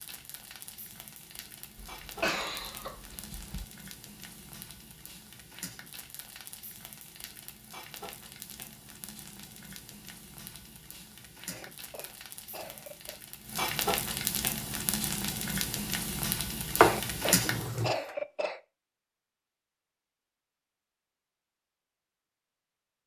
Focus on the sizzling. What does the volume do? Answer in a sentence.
The volume of the sizzling goes up.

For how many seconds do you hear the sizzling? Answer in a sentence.
You can hear the sizzling for 18 seconds altogether.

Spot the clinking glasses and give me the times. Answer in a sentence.
You can't hear the clinking glasses here.